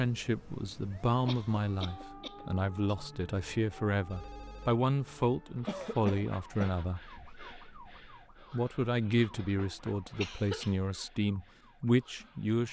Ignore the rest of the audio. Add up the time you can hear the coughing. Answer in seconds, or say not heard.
3 s.